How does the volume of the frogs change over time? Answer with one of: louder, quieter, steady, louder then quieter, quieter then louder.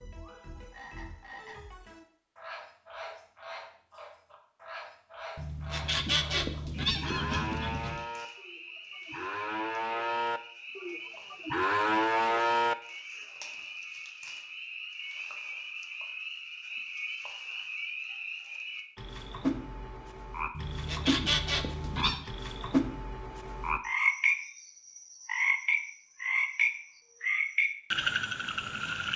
louder.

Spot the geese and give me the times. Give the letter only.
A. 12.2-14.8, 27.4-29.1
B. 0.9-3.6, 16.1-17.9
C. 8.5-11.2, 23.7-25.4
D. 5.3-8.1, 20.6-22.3
D.